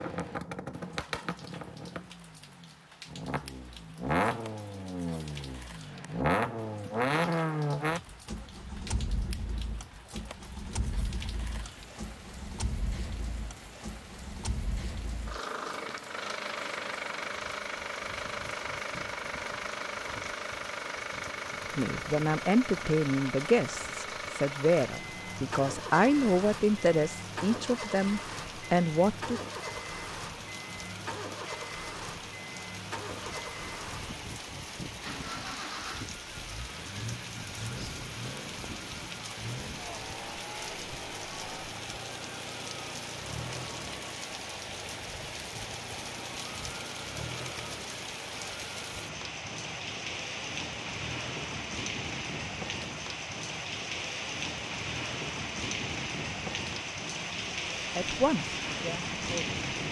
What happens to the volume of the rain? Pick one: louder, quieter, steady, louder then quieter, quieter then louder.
louder.